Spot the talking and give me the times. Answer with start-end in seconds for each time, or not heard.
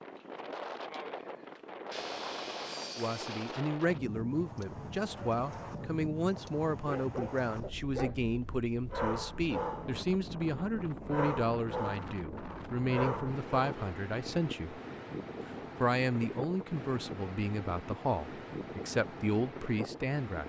3.0-14.8, 15.8-20.4.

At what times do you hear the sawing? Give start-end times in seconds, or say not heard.
1.9-3.5.